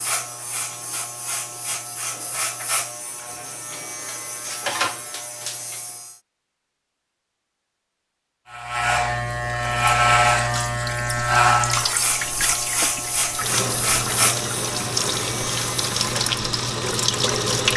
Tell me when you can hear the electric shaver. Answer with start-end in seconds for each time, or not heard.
0.0-6.2, 8.4-16.4.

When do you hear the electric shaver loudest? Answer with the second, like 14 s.
10 s.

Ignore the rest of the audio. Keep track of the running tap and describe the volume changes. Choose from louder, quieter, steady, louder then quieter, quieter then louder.
louder.